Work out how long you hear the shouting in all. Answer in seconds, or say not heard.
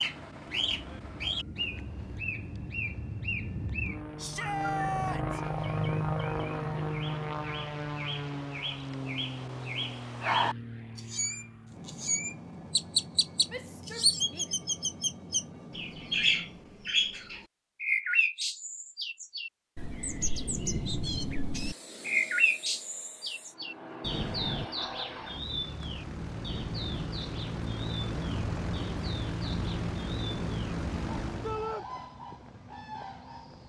3 s.